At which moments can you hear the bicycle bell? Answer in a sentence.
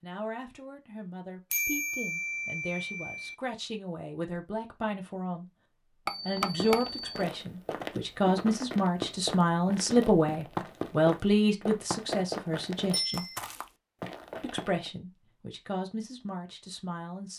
The bicycle bell can be heard from 1.5 to 3.4 s, from 6.0 to 7.2 s and from 12.9 to 13.4 s.